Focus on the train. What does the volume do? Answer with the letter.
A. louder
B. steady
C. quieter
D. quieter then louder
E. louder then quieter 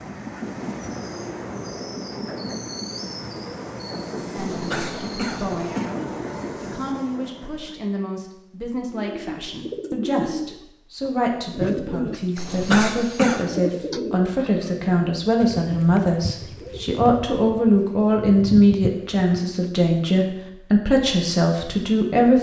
B.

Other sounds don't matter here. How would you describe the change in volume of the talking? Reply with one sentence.
The volume of the talking goes up.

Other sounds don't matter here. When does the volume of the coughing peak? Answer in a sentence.
The loudest moment of the coughing is at 13 seconds.